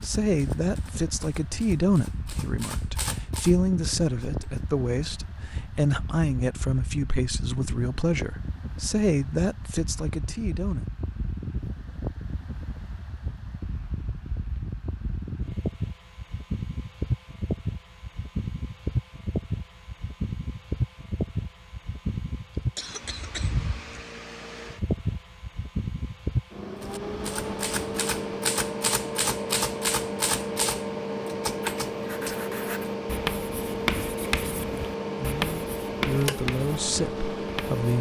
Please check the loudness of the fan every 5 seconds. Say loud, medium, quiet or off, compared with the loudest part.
medium, medium, medium, loud, loud, loud, loud, loud.